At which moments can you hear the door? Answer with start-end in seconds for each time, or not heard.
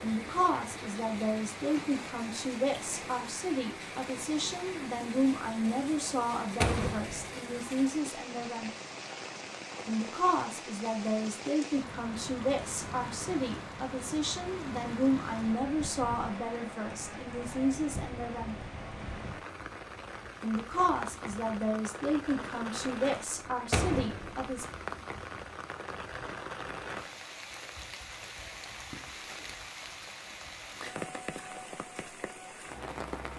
6.6-7.3, 23.7-24.6.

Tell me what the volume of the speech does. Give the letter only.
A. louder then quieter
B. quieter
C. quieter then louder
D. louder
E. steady
E.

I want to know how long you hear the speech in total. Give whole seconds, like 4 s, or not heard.
22 s.